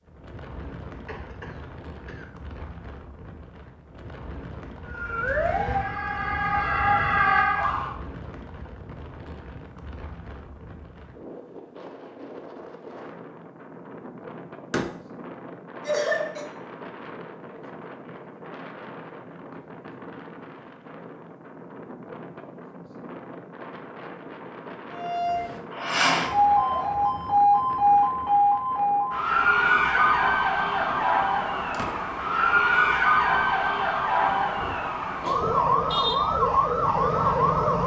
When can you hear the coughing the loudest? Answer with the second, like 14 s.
16 s.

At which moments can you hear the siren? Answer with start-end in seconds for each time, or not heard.
4.9-8.0, 24.9-37.8.